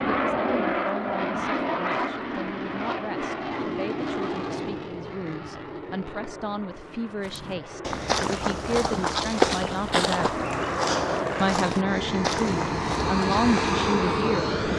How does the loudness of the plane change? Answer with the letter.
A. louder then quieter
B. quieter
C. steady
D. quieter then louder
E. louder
D.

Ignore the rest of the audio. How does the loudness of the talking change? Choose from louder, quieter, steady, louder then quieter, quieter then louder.
louder.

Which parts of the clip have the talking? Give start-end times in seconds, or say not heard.
0.2-10.4, 11.4-14.6.